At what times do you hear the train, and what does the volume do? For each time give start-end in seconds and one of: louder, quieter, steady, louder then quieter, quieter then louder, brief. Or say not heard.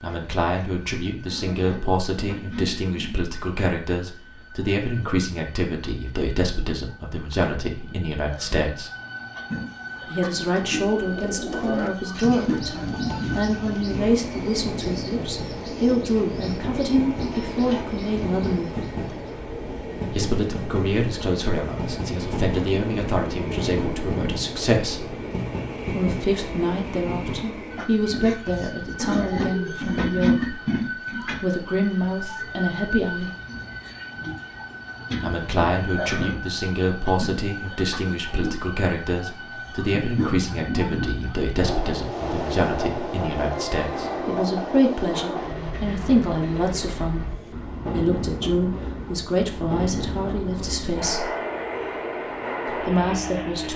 0.0-53.7 louder.